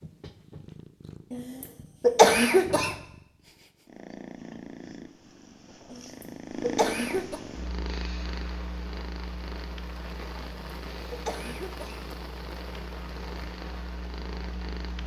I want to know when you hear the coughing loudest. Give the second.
2 s.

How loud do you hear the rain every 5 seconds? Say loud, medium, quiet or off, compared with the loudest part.
off, loud, loud.